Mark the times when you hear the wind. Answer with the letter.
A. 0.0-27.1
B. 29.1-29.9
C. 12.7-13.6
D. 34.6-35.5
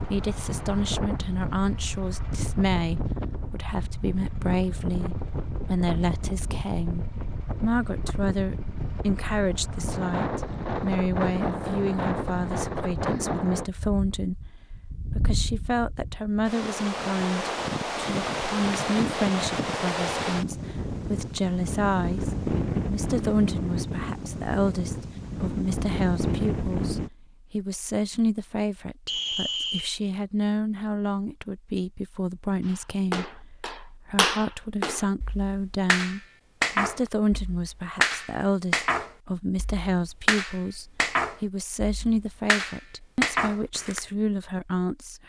A.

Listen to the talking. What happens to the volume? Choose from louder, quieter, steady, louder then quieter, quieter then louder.
steady.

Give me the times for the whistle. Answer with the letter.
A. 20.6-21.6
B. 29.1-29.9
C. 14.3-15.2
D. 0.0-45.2
B.